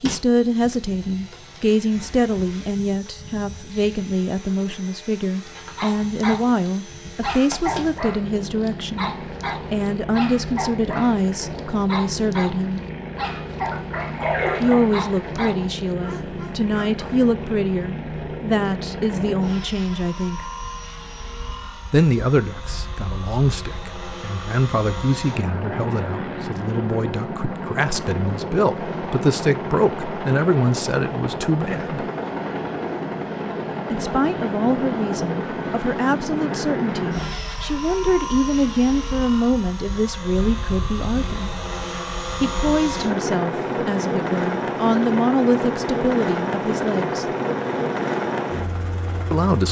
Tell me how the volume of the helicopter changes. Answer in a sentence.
The volume of the helicopter goes up.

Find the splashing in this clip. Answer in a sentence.
The splashing can be heard from 13.7 to 15.1 s.